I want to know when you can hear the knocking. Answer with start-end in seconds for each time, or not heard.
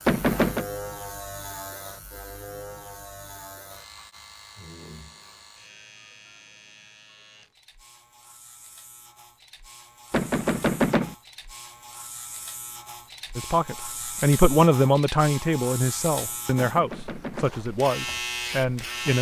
0.1-0.7, 10.1-11.2, 16.6-17.5.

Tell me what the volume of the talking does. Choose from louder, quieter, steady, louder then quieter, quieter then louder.
quieter.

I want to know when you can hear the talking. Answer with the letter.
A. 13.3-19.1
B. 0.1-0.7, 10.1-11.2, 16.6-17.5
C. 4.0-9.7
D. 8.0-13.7
A.